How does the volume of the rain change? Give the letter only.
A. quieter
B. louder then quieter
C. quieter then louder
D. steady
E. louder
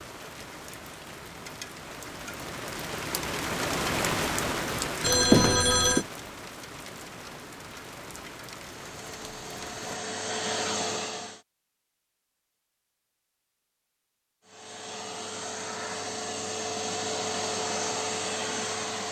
B.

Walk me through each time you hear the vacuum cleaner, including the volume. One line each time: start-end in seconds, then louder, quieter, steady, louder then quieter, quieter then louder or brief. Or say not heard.
8.7-11.4 brief
14.4-19.0 louder.